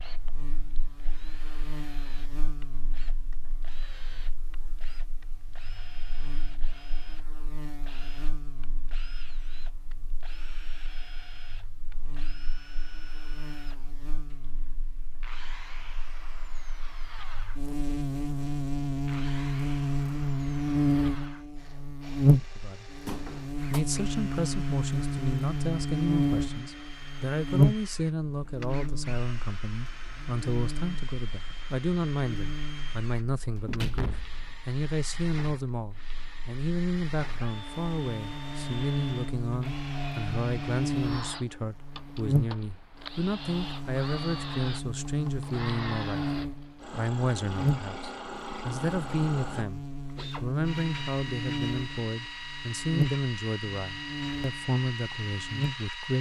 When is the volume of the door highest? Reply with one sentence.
The volume of the door peaks at 34 seconds.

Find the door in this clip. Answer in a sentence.
The door can be heard from 23.1 to 23.8 s and from 33.6 to 34.6 s.